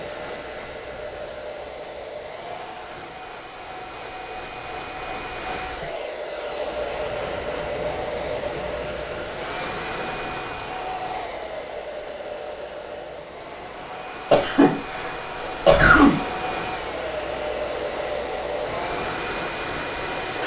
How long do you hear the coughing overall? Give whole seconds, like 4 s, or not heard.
2 s.